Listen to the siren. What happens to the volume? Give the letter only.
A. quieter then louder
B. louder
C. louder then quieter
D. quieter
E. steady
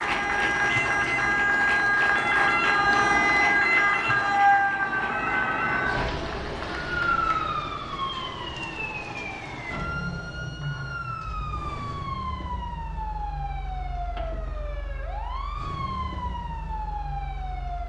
D.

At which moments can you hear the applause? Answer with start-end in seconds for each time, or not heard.
0.0-7.5.